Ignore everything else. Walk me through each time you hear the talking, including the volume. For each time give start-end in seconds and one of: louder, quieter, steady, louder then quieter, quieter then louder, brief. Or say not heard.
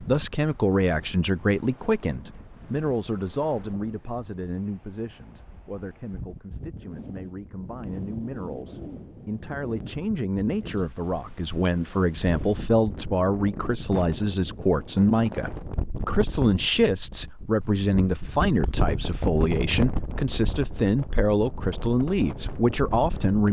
0.1-23.4 quieter then louder.